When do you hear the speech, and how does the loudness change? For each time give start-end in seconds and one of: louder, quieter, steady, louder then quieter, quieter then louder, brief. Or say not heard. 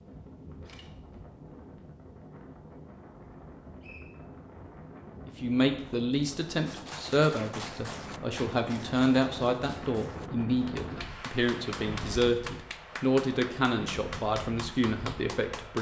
5.2-15.7 steady.